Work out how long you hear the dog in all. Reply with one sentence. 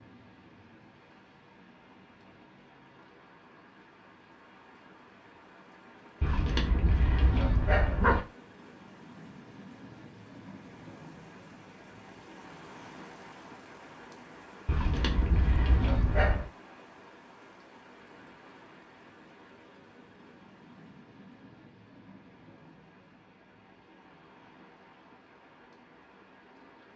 The dog can be heard for 4 seconds in total.